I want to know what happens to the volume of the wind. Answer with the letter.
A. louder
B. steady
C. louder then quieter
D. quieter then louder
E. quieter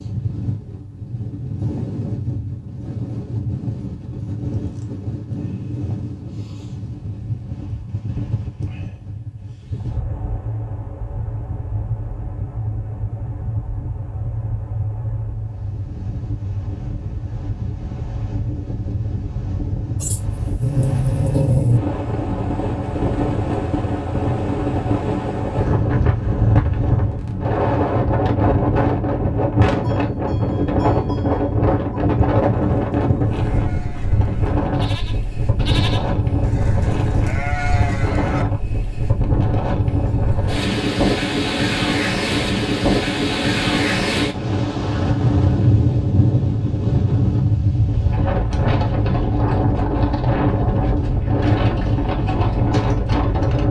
A.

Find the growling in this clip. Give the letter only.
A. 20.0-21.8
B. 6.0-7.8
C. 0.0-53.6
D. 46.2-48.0
A.